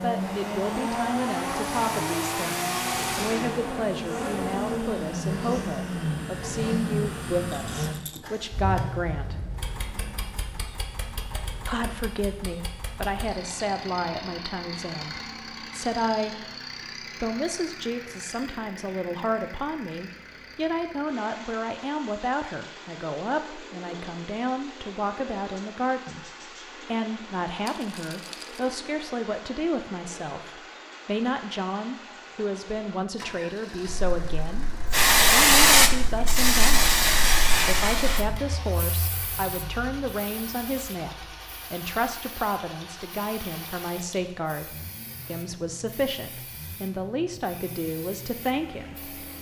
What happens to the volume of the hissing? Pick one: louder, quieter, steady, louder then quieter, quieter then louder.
quieter.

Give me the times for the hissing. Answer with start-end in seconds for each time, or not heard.
33.9-49.3.